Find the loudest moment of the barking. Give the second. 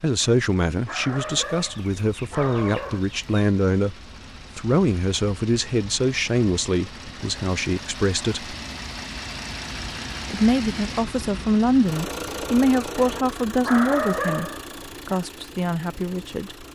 14 s.